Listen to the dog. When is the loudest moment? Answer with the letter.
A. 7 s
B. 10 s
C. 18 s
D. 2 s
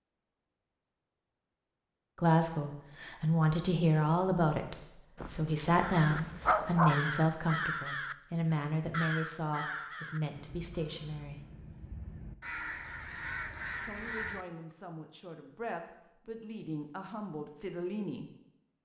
A.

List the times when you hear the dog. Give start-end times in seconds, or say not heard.
5.2-7.0.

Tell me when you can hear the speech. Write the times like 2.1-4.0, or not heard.
2.1-11.4, 13.8-18.2.